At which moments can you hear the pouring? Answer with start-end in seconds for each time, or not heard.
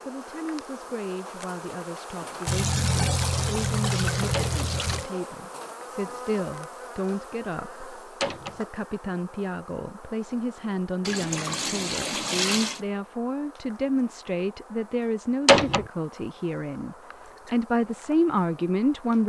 2.5-5.0, 11.1-12.8.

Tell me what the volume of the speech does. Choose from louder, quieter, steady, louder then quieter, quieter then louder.
louder.